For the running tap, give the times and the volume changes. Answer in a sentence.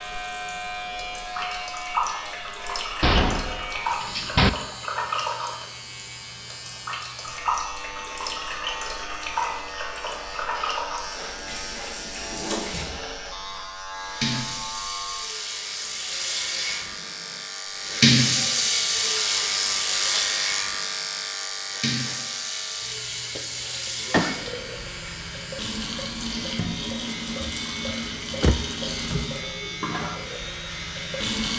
You can hear the running tap from 0.0 to 13.1 s, at a steady volume; and from 13.9 to 31.5 s, getting louder then quieter.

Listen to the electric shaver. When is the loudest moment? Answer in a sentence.
The volume of the electric shaver peaks at 20 seconds.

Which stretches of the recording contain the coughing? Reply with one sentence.
The coughing can be heard from 23.4 to 24.3 s.